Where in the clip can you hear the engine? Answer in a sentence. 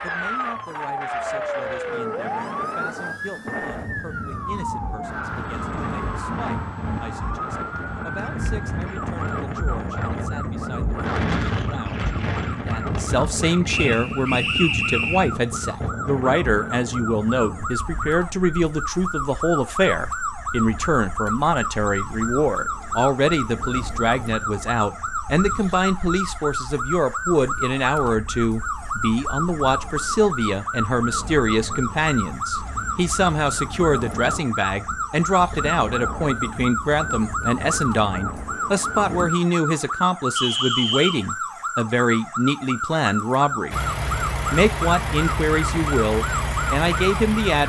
You can hear the engine from 43.7 to 47.6 s.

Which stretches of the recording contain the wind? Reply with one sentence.
The wind can be heard from 0.0 to 39.5 s.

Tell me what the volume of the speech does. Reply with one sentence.
The volume of the speech goes up.